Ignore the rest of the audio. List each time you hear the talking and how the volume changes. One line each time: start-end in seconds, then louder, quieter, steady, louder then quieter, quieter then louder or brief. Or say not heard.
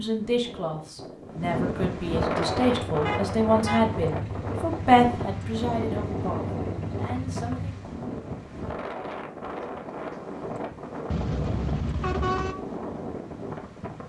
0.0-7.8 louder then quieter.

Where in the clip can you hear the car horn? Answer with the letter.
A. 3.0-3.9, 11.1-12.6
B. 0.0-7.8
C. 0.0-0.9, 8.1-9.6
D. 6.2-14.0
A.